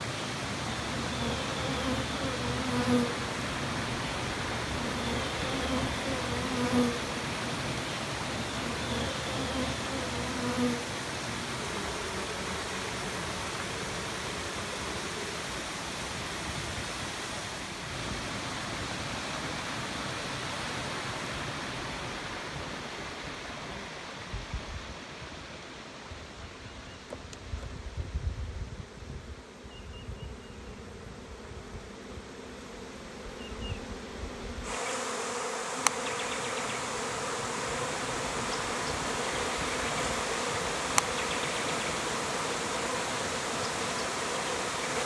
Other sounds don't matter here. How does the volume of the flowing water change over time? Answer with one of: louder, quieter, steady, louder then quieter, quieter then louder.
quieter then louder.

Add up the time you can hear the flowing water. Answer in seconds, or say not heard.
45 s.